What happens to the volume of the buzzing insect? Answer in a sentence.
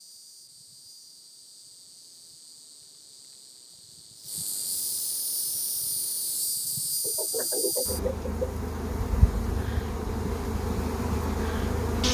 The loudness of the buzzing insect goes up.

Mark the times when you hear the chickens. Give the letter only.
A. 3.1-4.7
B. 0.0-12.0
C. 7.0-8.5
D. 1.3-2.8
C.